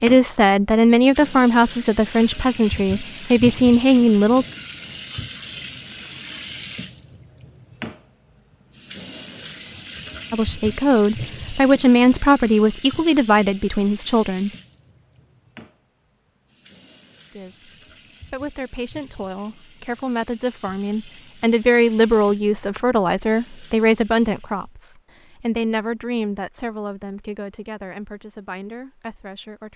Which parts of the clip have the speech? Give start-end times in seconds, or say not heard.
0.0-4.5, 10.3-14.5, 17.3-29.7.